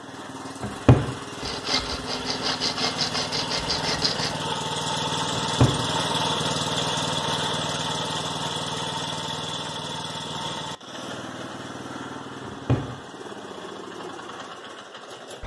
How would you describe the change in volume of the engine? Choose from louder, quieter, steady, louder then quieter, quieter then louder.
louder then quieter.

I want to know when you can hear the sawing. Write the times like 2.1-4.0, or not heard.
1.4-4.3.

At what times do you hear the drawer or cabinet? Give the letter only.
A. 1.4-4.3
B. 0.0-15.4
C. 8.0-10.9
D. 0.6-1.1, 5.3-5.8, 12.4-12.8
D.